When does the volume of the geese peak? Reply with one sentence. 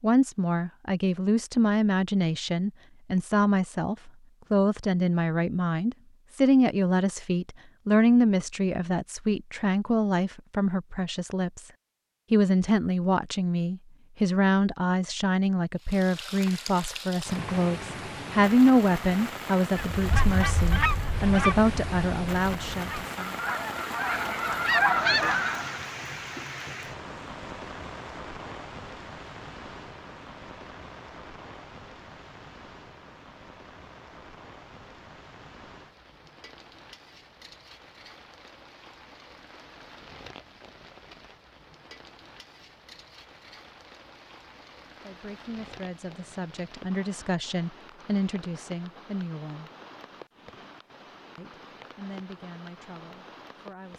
The loudest moment of the geese is at 25 seconds.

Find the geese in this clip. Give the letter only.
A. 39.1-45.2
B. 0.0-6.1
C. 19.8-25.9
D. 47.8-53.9
C.